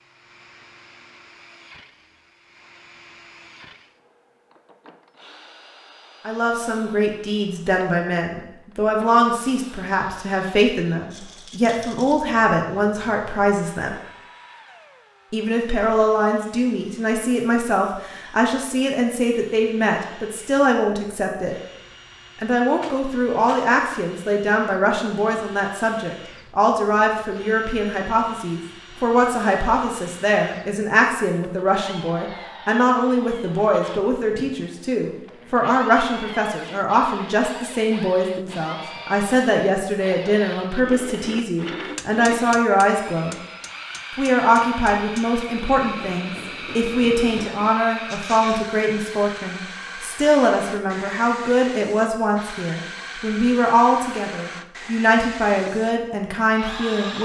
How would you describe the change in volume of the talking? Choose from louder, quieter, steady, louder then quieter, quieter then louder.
steady.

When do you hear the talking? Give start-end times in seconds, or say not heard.
6.2-13.9, 15.3-21.6, 22.4-43.4, 44.1-57.1.